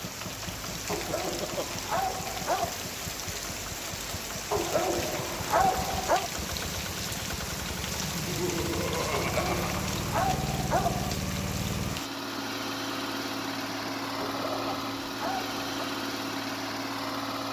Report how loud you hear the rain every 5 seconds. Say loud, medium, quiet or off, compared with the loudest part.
loud, loud, loud, off.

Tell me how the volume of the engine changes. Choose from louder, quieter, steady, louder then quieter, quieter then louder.
louder.